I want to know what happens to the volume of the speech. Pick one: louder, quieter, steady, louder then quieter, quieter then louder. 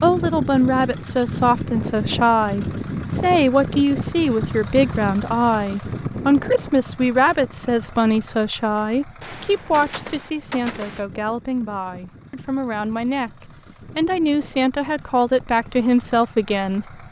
quieter then louder.